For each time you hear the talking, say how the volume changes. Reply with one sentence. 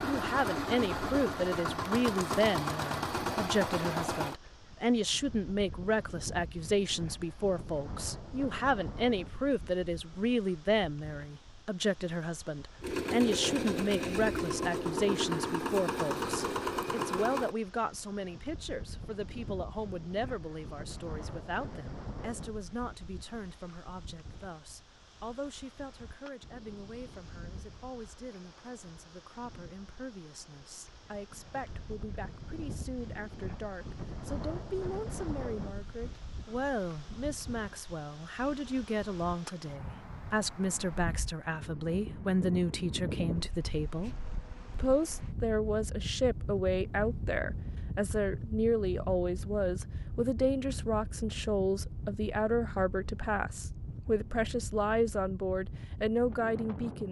You can hear the talking from 0.0 to 57.0 s, getting quieter then louder.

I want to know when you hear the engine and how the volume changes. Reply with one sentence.
The engine can be heard from 0.0 to 4.4 s, at a steady volume; and from 12.8 to 17.6 s, at a steady volume.